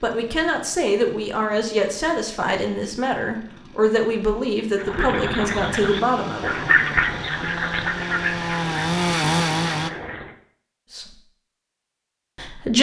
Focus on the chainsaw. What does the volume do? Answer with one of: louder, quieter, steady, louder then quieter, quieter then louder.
louder.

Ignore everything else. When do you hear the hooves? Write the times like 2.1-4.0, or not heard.
not heard.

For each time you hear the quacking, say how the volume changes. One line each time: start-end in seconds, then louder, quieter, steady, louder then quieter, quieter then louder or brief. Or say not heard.
4.8-10.3 louder then quieter.